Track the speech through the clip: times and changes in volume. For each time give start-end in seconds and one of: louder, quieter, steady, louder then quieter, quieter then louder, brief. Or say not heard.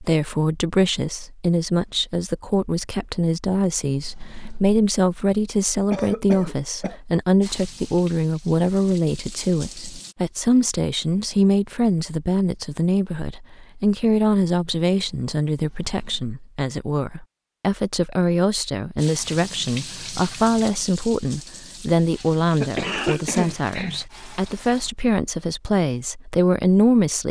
0.0-27.2 steady.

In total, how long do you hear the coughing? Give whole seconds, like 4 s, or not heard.
3 s.